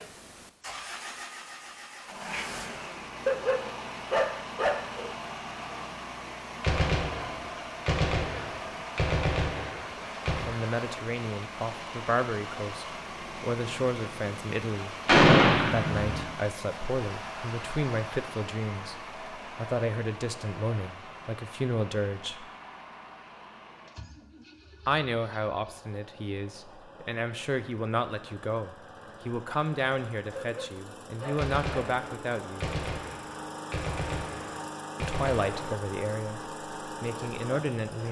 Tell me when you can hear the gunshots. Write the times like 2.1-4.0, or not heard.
6.6-10.4, 15.1-16.2, 31.4-35.5.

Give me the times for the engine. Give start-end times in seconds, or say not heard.
0.0-38.0.